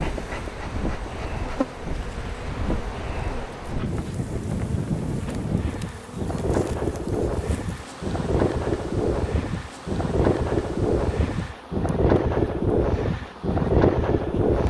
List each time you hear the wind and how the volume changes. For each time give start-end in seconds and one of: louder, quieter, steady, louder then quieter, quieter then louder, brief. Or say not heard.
0.0-14.6 louder.